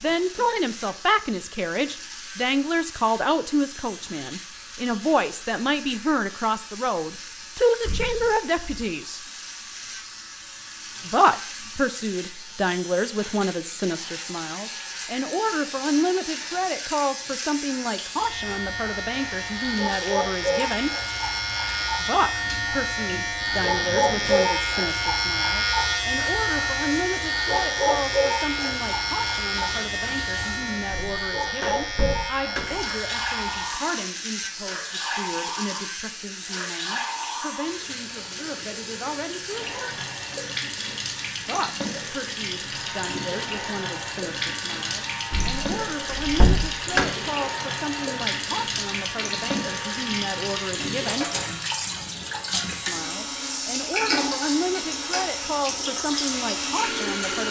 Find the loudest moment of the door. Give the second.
47 s.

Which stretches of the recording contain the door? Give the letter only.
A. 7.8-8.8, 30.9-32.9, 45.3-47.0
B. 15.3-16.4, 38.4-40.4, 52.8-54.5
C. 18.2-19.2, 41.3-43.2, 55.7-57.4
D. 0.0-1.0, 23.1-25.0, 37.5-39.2
A.